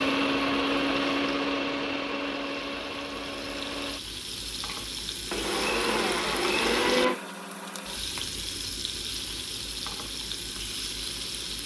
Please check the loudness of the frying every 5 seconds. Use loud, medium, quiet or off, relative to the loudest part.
medium, loud, loud.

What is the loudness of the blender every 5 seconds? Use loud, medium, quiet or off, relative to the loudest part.
loud, loud, off.